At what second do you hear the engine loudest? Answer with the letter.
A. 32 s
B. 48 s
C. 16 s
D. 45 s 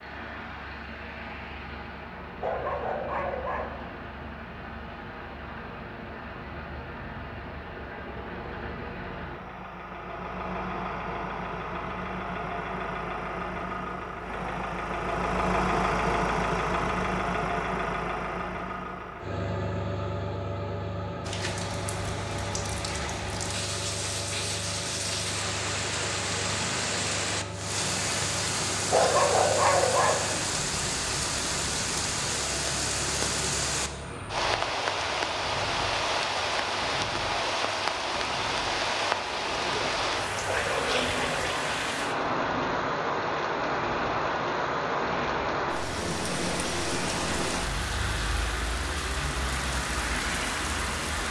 C.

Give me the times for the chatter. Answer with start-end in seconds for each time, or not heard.
not heard.